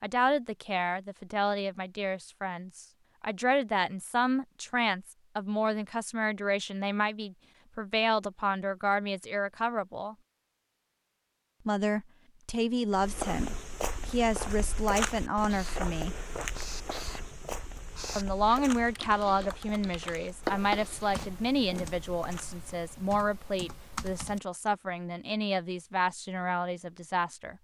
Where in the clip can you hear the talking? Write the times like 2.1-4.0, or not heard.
0.0-10.2, 11.7-16.1, 18.1-27.5.